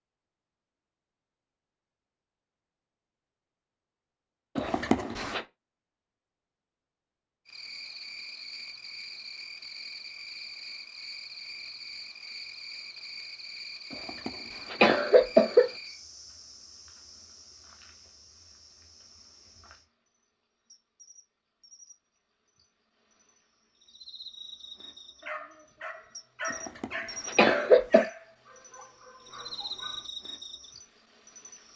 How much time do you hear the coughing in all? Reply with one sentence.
You can hear the coughing for 4 seconds altogether.